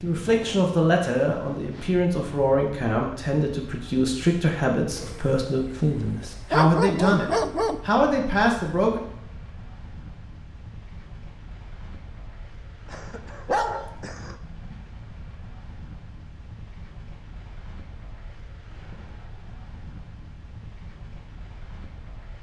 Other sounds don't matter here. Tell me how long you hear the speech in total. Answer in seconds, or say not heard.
9 s.